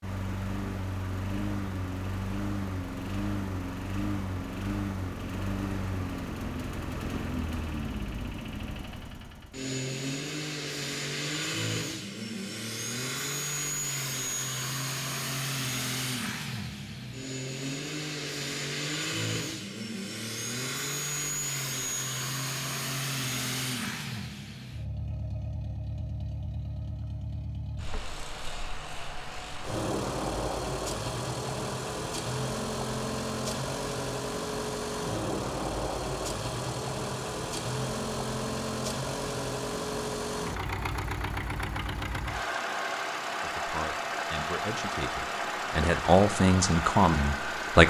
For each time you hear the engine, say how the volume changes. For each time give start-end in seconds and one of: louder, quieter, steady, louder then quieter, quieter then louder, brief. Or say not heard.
0.0-47.8 steady.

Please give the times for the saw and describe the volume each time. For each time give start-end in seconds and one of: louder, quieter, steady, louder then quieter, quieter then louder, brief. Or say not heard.
not heard.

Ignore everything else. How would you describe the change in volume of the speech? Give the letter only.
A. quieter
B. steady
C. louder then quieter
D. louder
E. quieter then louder
D.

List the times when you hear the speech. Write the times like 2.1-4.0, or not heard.
43.4-47.8.